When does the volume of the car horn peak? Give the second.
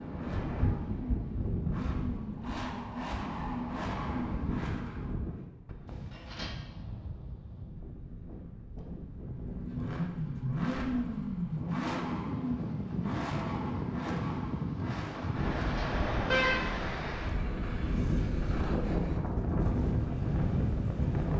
16 s.